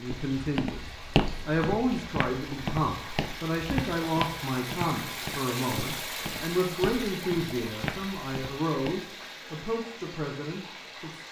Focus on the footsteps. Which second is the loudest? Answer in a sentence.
The volume of the footsteps peaks at 1 second.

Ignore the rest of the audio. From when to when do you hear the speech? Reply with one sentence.
The speech can be heard from 0.0 to 11.2 s.